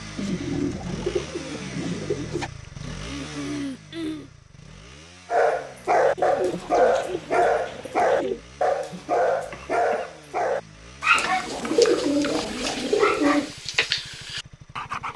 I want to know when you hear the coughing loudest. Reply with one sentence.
The volume of the coughing peaks at 4 seconds.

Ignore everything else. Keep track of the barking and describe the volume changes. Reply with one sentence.
The loudness of the barking goes down.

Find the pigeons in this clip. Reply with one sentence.
You can hear the pigeons from 0.1 to 2.5 s, from 6.2 to 8.4 s and from 11.2 to 13.6 s.